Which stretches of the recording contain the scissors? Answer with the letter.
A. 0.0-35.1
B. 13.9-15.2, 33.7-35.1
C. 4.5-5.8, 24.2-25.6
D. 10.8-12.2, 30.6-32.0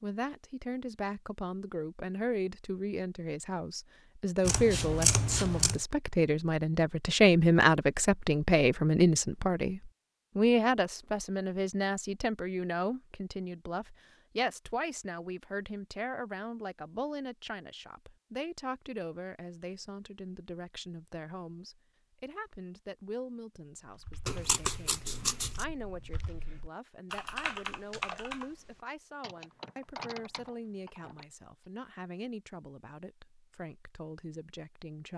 C.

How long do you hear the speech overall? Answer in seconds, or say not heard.
35 s.